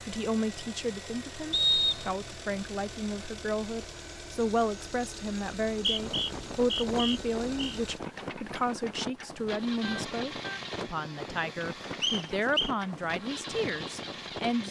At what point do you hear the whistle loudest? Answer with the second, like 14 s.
2 s.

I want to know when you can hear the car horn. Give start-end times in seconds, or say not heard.
9.8-10.6.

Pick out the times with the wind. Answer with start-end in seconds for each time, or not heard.
5.8-14.6.